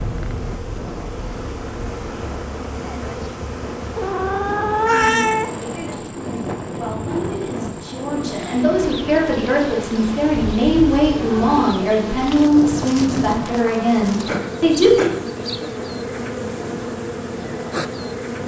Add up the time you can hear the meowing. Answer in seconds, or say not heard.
3 s.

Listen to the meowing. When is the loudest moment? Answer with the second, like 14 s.
5 s.